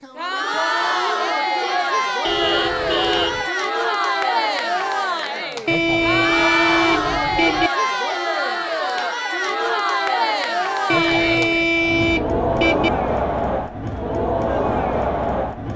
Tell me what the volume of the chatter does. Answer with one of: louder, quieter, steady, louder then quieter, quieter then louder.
steady.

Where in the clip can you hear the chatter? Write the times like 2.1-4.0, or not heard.
0.0-15.7.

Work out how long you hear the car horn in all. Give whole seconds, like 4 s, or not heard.
5 s.